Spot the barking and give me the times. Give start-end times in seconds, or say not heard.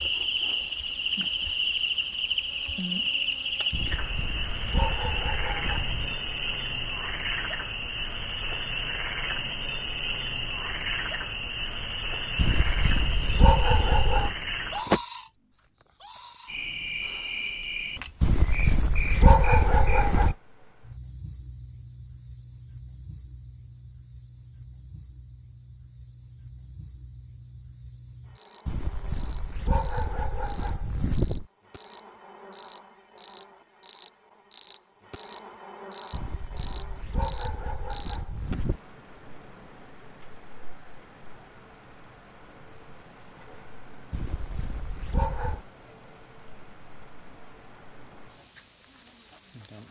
3.7-6.2, 12.3-14.3, 18.2-20.4, 28.6-31.4, 36.1-38.8, 44.1-45.6.